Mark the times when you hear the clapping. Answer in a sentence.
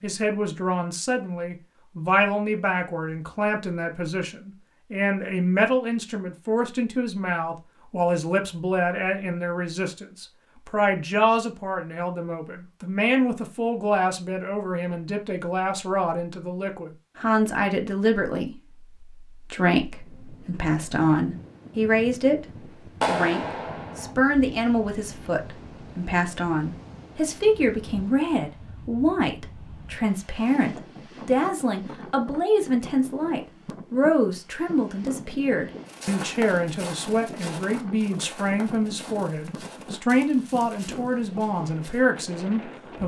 You can hear the clapping from 23.0 to 24.1 s.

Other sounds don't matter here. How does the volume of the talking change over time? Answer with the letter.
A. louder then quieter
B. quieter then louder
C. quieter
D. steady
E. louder
D.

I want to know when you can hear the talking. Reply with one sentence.
The talking can be heard from 0.0 to 43.0 s.